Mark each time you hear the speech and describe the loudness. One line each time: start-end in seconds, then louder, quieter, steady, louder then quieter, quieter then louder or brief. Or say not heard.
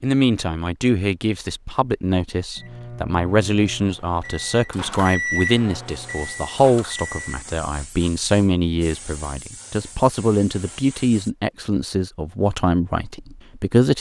0.0-13.9 steady.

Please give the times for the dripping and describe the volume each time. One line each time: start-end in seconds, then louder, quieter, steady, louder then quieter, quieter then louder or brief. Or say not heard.
not heard.